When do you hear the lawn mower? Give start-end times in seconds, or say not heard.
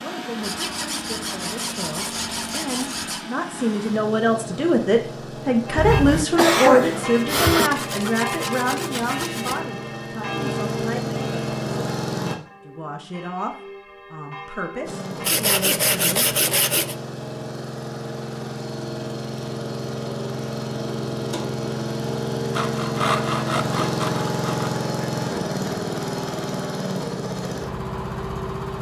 0.0-12.3, 14.8-28.7.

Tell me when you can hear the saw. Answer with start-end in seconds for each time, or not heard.
0.4-3.2, 7.7-9.6, 15.2-16.9, 22.6-24.7.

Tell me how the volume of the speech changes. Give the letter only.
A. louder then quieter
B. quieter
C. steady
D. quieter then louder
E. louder
A.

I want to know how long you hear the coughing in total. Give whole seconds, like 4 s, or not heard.
2 s.